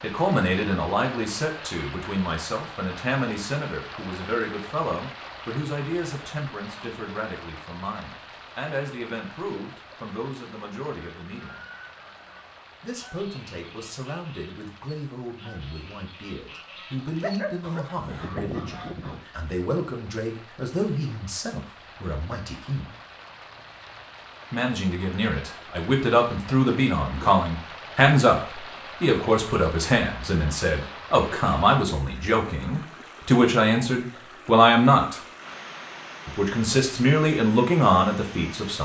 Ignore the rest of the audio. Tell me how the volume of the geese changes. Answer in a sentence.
The loudness of the geese goes up.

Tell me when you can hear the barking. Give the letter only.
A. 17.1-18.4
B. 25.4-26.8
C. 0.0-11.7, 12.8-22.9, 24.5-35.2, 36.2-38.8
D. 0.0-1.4
A.